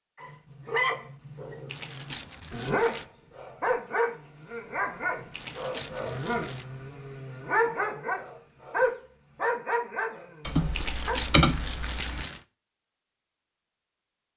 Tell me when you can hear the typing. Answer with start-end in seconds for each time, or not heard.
10.4-12.2.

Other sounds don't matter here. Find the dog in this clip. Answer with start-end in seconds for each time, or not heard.
0.1-11.2.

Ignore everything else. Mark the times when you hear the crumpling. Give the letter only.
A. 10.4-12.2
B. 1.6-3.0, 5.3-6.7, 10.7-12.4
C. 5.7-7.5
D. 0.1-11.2
B.